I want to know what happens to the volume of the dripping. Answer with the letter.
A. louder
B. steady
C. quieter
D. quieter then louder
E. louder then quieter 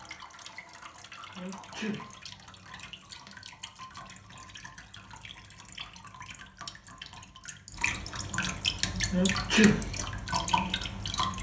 A.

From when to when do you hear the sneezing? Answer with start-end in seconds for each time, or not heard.
1.4-2.0, 9.1-9.8.